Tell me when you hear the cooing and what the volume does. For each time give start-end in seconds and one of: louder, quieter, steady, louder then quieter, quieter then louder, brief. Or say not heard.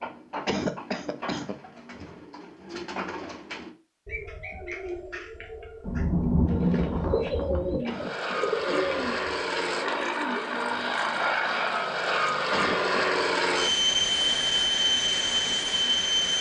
0.0-10.9 louder.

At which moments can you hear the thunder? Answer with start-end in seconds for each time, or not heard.
5.8-7.8.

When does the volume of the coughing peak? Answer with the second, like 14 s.
1 s.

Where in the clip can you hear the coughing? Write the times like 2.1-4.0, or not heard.
0.5-1.6, 7.8-8.9, 12.5-13.0.